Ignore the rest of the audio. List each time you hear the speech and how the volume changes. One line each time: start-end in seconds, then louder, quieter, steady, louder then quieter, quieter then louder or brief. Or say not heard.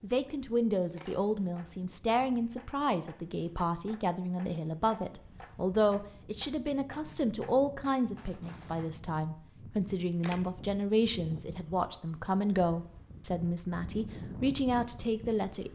0.0-15.7 steady.